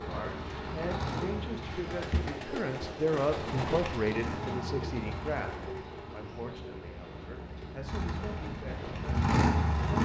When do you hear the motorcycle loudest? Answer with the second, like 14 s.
10 s.